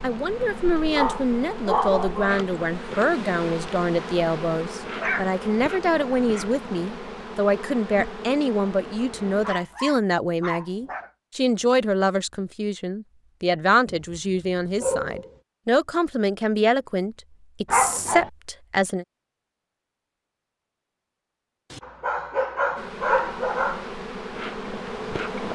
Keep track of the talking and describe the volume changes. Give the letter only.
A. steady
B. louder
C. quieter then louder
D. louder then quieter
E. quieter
A.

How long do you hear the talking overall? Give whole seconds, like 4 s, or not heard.
19 s.